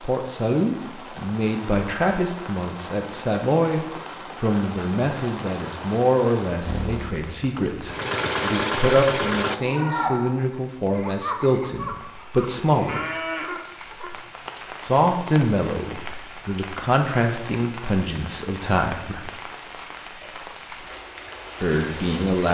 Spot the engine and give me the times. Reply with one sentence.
The engine can be heard from 6.7 to 9.6 s.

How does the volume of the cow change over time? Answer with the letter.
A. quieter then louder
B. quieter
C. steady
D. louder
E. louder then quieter
A.